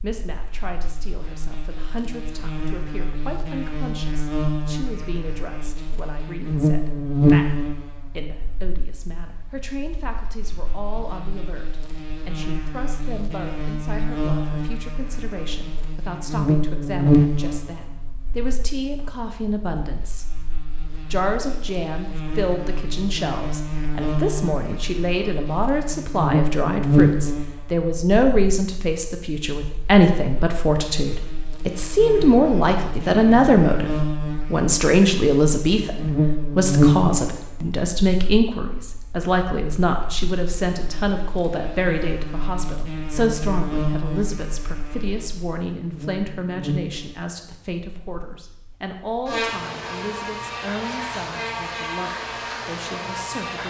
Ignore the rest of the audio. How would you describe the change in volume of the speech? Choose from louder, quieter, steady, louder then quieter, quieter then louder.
louder then quieter.